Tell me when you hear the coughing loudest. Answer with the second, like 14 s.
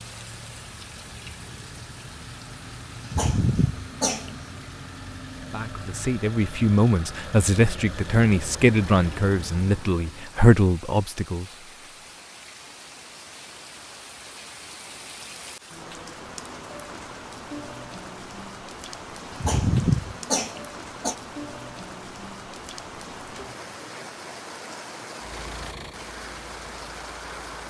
20 s.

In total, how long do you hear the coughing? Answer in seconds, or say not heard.
3 s.